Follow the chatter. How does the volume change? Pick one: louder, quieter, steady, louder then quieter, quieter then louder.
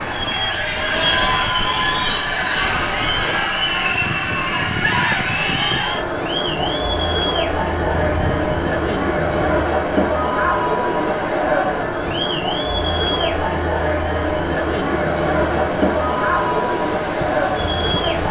steady.